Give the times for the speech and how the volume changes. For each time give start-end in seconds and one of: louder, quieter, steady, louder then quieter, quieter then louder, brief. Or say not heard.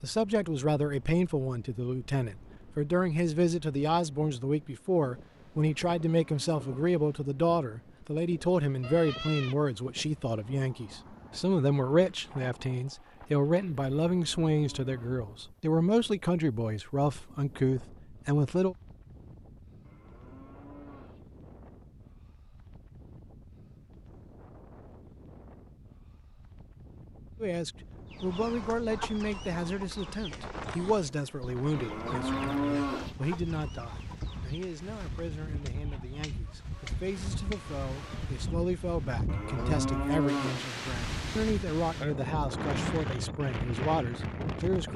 0.0-18.8 steady
27.4-44.9 quieter then louder.